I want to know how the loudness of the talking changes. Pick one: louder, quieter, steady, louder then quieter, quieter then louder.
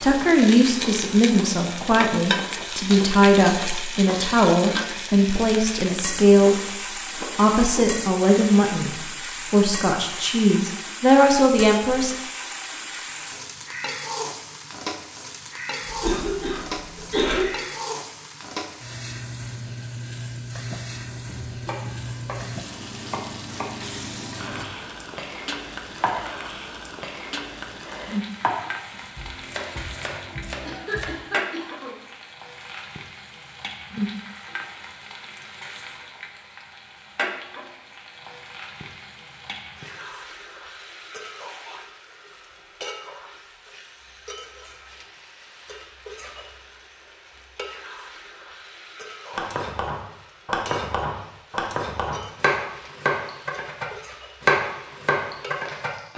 steady.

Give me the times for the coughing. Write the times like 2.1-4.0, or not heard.
15.8-17.4, 30.6-31.9.